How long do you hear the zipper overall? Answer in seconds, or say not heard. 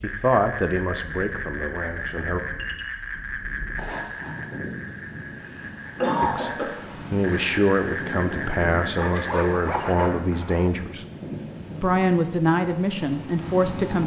3 s.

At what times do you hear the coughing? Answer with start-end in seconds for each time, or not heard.
5.4-6.7.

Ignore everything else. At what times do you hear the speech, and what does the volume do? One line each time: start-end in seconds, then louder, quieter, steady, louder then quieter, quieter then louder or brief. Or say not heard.
0.0-2.4 brief
6.2-11.1 steady
11.8-14.0 brief.